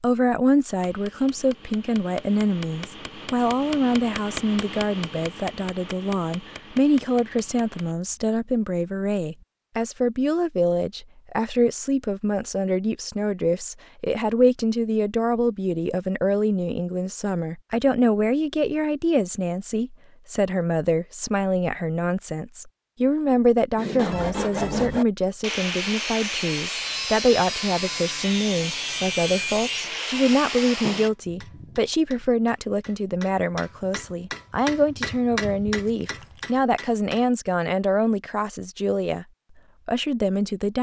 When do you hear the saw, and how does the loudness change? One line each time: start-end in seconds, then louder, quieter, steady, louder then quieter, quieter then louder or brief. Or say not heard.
23.8-31.1 steady.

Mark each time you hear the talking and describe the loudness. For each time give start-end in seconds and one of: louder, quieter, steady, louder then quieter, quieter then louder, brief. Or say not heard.
0.0-39.2 steady
39.9-40.7 brief.